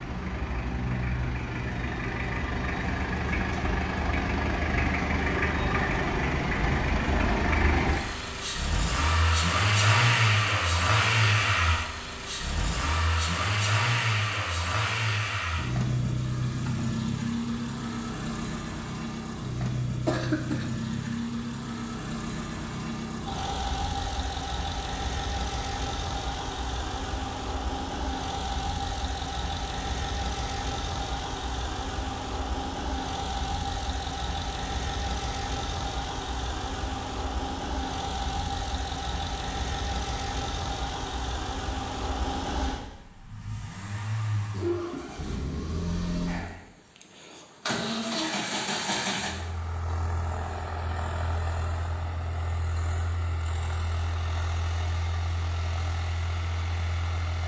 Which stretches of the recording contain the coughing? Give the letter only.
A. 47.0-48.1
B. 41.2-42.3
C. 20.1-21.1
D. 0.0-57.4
C.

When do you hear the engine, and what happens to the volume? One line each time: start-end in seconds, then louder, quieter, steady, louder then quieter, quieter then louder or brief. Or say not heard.
0.0-57.4 quieter.